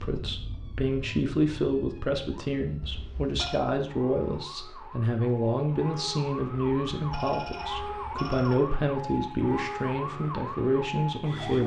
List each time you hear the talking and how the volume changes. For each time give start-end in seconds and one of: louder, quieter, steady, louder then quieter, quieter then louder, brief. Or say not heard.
0.0-11.6 steady.